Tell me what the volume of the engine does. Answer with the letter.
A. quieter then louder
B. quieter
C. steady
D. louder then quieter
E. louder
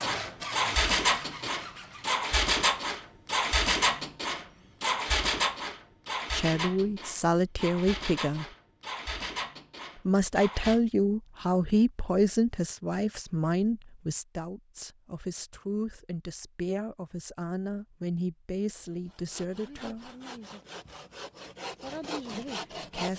B.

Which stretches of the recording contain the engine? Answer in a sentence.
You can hear the engine from 0.0 to 10.8 s.